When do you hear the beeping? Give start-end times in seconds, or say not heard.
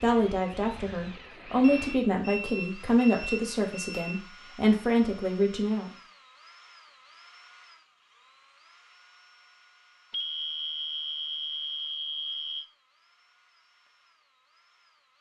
1.6-4.2, 10.1-12.7.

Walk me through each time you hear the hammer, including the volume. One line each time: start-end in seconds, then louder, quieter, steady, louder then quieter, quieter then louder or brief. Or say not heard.
not heard.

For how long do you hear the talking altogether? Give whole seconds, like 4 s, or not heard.
6 s.